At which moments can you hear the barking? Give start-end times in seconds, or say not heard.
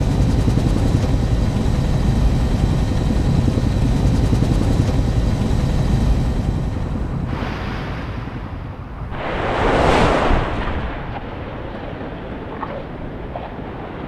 not heard.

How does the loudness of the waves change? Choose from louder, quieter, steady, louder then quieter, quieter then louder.
louder then quieter.